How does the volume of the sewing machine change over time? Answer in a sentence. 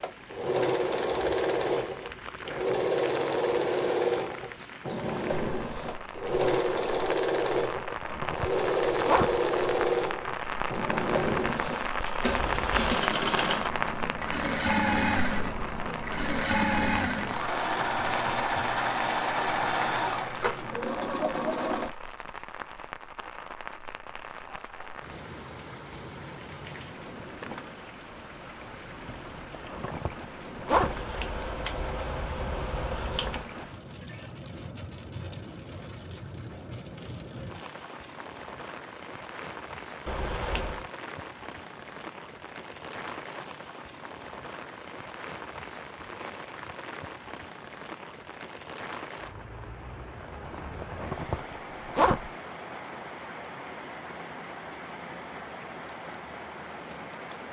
The loudness of the sewing machine stays about the same.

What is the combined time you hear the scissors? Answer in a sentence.
You can hear the scissors for 4 seconds altogether.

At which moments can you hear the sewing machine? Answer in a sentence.
You can hear the sewing machine from 0.0 to 21.9 s.